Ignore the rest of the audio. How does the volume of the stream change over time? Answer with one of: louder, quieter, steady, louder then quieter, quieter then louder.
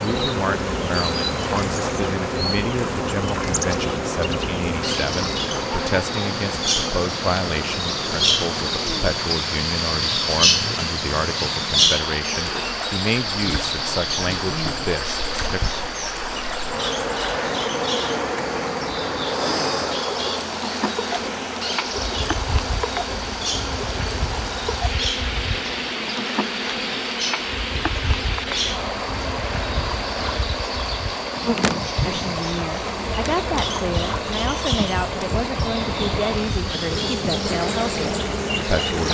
steady.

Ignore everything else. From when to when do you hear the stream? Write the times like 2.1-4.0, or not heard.
0.0-39.1.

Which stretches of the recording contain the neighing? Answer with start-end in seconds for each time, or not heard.
not heard.